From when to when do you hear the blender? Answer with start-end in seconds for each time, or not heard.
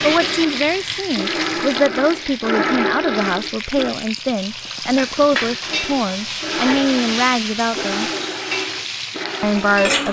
0.0-4.0, 5.7-10.0.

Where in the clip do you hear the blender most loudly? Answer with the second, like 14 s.
3 s.